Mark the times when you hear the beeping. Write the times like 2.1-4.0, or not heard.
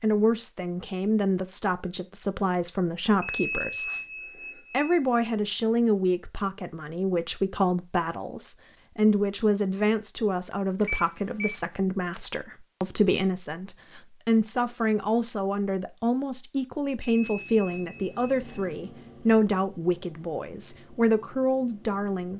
3.2-5.0, 10.8-11.5, 17.0-18.6.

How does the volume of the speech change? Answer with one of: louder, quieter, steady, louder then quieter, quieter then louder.
steady.